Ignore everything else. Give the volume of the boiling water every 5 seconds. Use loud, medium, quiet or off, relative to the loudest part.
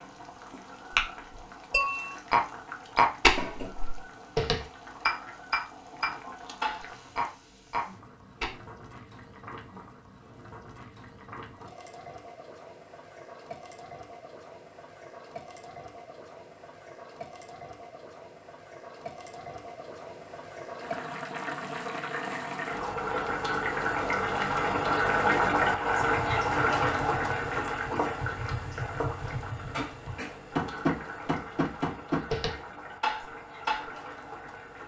quiet, quiet, quiet, quiet, loud, loud, quiet.